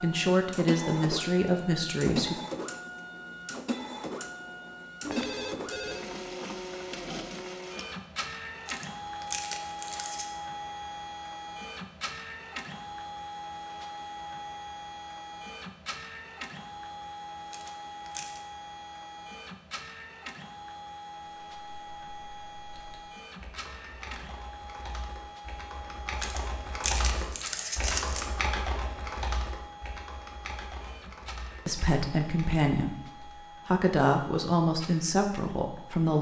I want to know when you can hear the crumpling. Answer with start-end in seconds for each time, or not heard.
8.7-10.3, 17.5-18.4, 26.2-28.2.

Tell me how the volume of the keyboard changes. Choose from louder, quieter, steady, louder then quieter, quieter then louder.
louder then quieter.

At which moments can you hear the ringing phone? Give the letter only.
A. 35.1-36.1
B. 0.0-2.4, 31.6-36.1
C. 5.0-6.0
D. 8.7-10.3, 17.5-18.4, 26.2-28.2
C.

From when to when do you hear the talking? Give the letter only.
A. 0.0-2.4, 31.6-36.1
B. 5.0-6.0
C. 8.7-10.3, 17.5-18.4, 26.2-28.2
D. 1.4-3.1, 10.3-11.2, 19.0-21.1
A.